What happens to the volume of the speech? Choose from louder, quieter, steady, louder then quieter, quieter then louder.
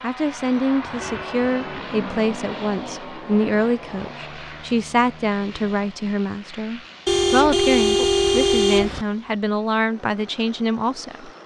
steady.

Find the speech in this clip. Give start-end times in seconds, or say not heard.
0.0-11.3.